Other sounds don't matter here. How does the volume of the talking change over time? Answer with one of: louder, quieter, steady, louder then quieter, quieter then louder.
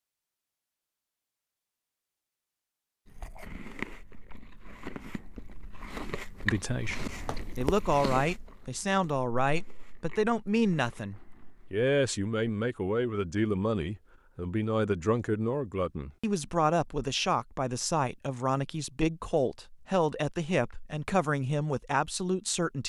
steady.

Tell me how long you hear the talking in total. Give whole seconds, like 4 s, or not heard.
16 s.